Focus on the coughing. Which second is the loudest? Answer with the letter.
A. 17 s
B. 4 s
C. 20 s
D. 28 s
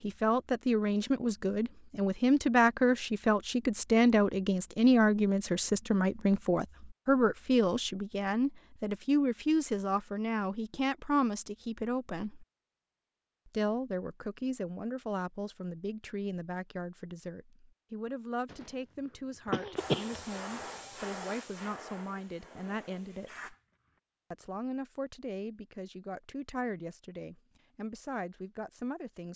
C.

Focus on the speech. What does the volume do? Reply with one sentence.
The loudness of the speech goes down.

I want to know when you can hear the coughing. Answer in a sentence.
You can hear the coughing from 18.4 to 20.6 s.